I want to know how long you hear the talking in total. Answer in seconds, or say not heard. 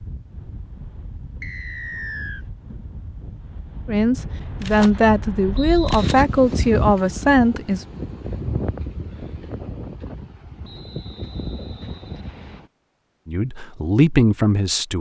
6 s.